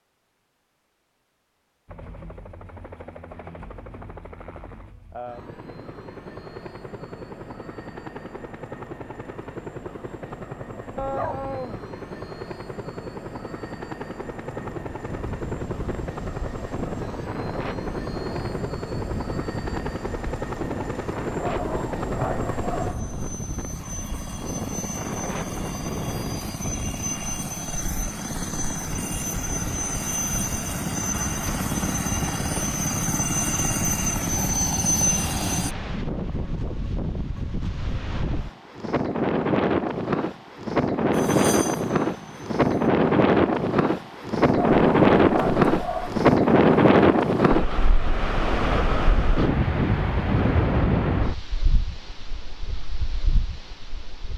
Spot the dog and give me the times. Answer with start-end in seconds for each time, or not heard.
10.9-11.8, 21.4-23.3, 44.5-46.2.